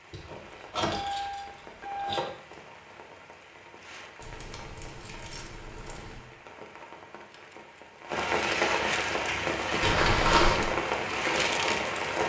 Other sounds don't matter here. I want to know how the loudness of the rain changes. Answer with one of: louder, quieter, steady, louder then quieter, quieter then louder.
louder.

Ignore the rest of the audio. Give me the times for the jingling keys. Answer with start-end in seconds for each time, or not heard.
0.1-2.2, 4.2-6.2, 9.8-10.7.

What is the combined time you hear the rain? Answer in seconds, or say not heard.
12 s.